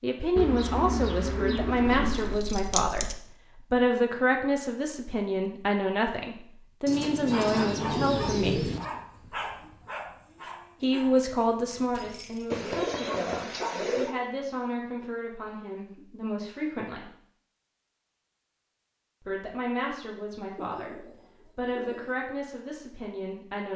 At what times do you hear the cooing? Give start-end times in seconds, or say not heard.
0.3-2.4, 6.8-8.8, 12.5-14.2, 20.6-22.1.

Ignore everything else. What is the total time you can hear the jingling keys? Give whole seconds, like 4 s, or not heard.
2 s.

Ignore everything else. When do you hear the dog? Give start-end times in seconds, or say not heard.
7.2-14.2.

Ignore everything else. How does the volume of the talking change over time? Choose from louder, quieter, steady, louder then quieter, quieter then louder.
quieter.